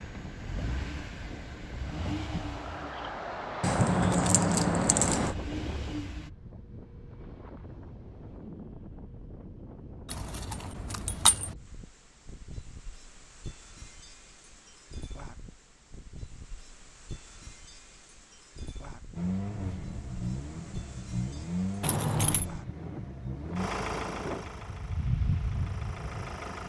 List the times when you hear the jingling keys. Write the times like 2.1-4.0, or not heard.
3.6-5.3, 10.1-11.6, 21.8-22.4.